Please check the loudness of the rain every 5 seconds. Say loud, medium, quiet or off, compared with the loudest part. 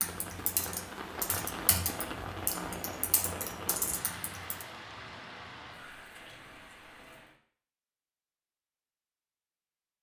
loud, medium.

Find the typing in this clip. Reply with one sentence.
The typing can be heard from 0.0 to 4.7 s.